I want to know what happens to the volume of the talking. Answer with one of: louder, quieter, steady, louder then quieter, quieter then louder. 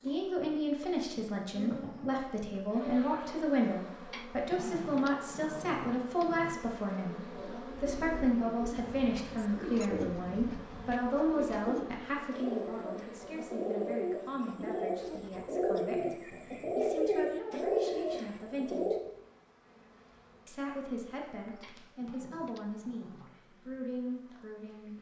quieter.